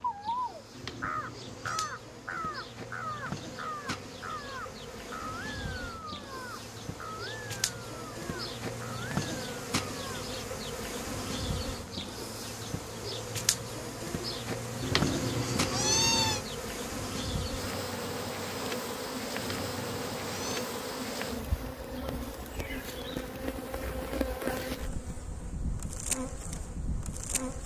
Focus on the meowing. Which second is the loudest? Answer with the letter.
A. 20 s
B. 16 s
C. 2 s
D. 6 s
B.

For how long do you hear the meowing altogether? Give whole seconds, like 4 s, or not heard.
4 s.